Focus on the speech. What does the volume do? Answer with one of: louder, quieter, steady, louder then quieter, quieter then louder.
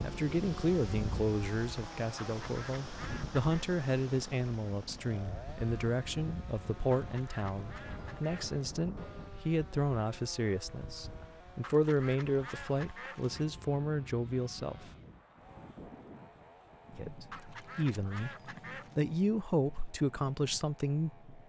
steady.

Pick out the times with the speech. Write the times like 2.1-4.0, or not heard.
0.0-14.9, 16.9-21.4.